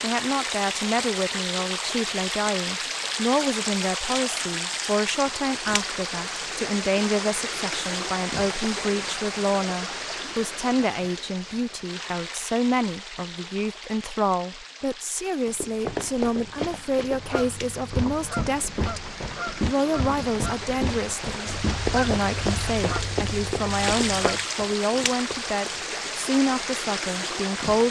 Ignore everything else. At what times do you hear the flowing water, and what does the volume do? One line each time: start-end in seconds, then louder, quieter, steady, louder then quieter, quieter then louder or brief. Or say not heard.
0.0-27.8 quieter then louder.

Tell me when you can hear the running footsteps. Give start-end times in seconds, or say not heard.
15.4-25.9.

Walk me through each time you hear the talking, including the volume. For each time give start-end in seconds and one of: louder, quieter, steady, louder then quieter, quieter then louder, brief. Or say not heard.
0.0-27.8 steady.